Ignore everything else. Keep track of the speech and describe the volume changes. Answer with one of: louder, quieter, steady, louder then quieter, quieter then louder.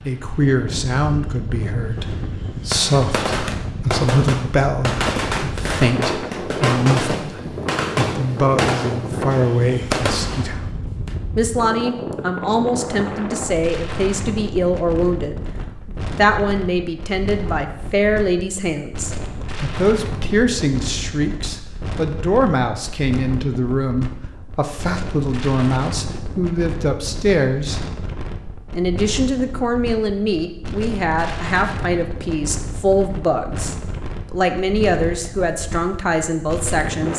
steady.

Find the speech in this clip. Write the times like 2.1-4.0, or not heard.
0.1-10.7, 11.3-27.9, 28.7-37.1.